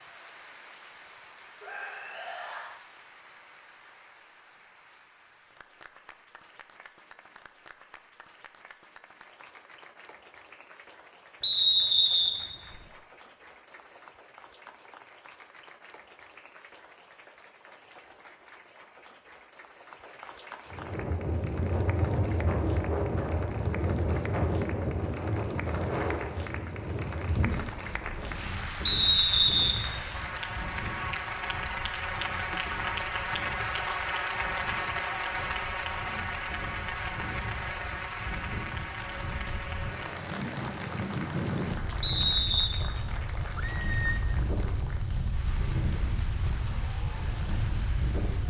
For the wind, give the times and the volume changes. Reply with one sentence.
The wind can be heard from 20.7 to 48.4 s, getting quieter then louder.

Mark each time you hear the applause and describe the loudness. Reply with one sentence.
You can hear the applause from 0.0 to 48.4 s, getting louder then quieter.